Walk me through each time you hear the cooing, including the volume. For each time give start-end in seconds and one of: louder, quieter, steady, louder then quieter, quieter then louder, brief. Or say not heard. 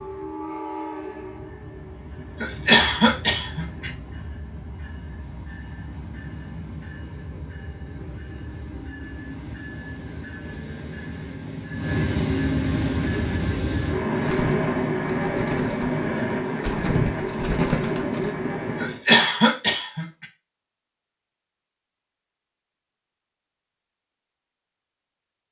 12.6-18.9 louder.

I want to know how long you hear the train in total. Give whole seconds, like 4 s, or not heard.
19 s.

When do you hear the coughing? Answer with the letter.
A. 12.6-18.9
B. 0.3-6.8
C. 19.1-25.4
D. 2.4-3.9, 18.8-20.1
D.